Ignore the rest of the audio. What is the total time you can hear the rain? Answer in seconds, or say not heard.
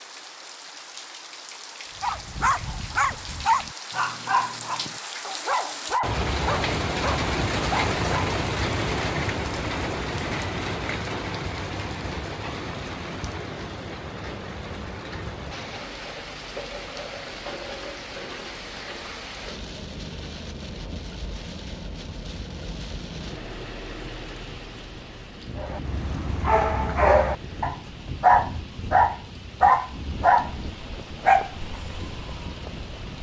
33 s.